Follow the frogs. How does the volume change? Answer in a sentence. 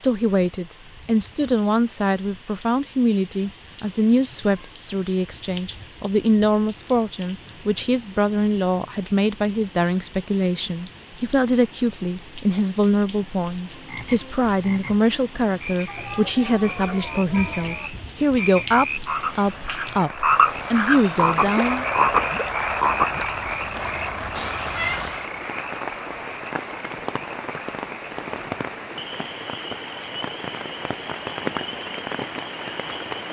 The loudness of the frogs goes up, then down.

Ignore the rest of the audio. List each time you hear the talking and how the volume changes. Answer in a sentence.
The talking can be heard from 0.0 to 21.9 s, at a steady volume.